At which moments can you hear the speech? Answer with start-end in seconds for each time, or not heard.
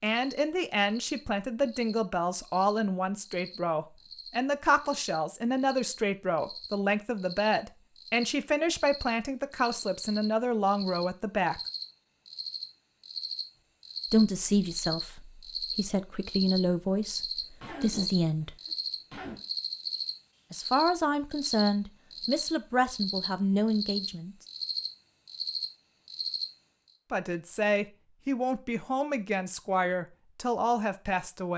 0.0-11.6, 14.1-18.6, 20.5-24.4, 27.1-31.5.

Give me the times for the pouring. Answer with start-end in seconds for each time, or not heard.
not heard.